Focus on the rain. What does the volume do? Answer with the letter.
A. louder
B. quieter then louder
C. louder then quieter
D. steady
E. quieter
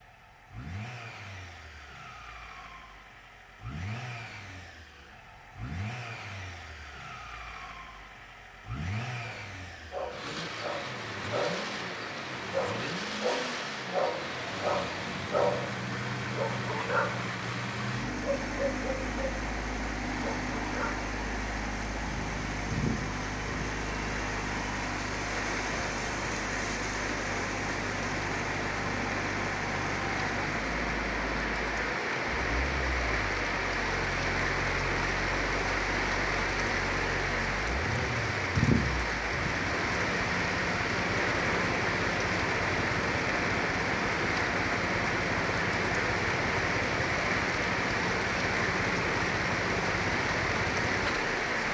A.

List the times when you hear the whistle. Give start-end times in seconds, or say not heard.
not heard.